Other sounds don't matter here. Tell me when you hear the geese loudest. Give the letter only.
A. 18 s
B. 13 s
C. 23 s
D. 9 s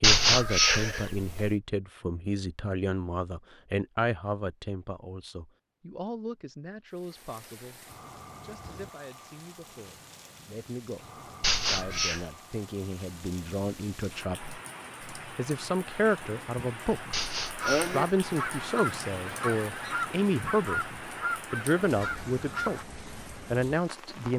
A.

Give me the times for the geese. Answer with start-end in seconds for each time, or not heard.
17.6-22.9.